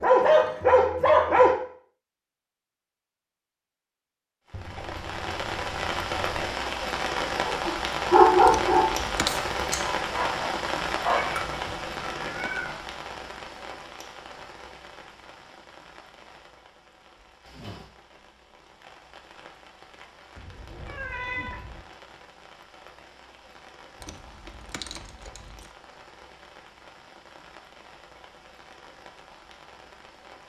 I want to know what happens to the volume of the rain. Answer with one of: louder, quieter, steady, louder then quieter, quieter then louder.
quieter.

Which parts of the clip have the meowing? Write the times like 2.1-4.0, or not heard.
4.5-6.5, 11.1-12.8, 20.4-21.9.